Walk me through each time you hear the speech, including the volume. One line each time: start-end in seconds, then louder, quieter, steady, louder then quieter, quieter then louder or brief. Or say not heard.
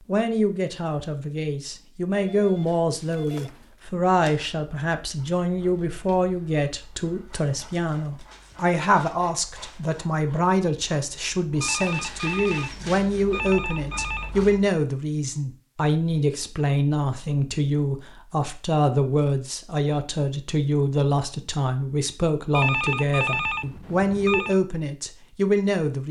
0.1-26.0 steady.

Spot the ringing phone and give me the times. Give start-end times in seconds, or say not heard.
2.1-3.8, 11.6-14.3, 22.5-24.6.